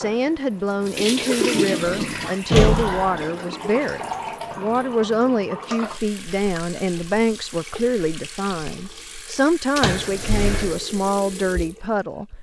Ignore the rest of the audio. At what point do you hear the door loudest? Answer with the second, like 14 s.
3 s.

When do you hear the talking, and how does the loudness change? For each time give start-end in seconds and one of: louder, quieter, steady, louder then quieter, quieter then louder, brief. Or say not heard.
0.0-12.2 steady.